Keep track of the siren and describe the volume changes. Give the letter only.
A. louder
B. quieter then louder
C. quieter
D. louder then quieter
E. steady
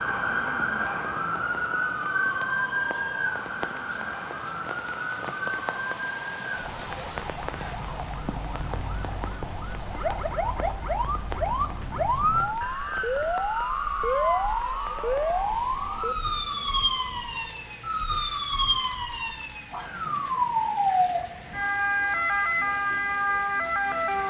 B.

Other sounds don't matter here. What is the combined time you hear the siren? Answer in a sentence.
The siren can be heard for 24 seconds in total.